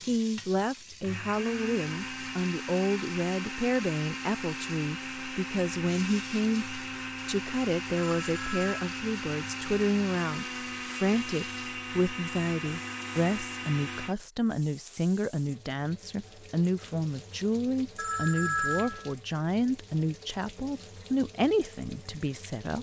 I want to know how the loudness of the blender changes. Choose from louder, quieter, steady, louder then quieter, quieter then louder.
steady.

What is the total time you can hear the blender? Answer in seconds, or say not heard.
14 s.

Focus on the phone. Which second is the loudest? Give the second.
19 s.